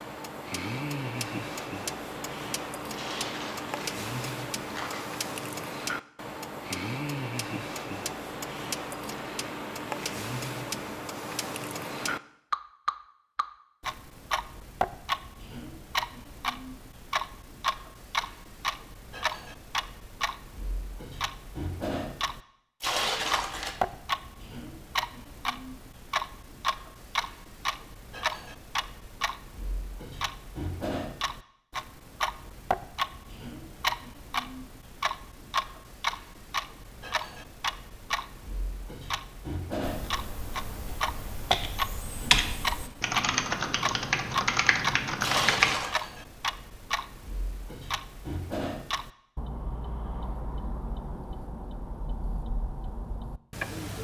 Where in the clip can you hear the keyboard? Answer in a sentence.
The keyboard can be heard from 39.8 to 45.8 s.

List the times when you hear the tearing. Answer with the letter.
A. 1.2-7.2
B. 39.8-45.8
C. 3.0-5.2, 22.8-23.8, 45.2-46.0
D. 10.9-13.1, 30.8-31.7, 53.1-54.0
C.